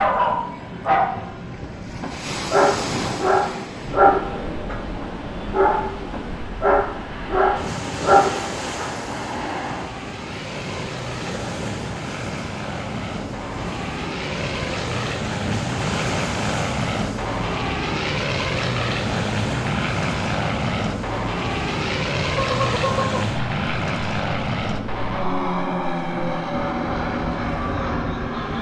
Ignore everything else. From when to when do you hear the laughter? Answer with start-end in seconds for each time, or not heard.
22.4-23.3.